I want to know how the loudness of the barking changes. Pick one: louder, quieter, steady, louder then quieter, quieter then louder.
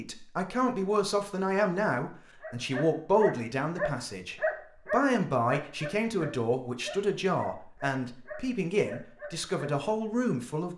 quieter.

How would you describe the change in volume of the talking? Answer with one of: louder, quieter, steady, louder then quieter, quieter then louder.
steady.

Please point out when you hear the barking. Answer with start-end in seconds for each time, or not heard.
2.4-9.8.